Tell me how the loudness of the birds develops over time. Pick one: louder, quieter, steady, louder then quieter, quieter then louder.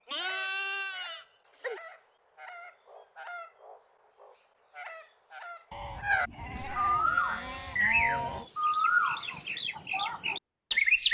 louder.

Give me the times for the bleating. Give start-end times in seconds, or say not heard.
0.1-1.8, 5.7-8.5.